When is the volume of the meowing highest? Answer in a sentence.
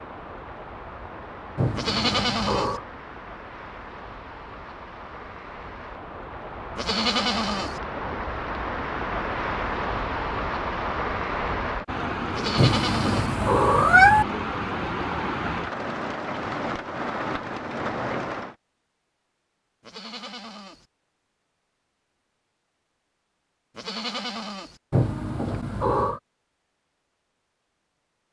The volume of the meowing peaks at 14 seconds.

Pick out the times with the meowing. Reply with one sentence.
You can hear the meowing from 1.6 to 2.9 s, from 12.6 to 14.2 s and from 24.9 to 26.2 s.